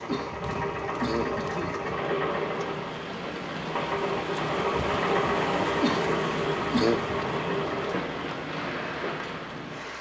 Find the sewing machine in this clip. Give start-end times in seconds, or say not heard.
0.0-9.9.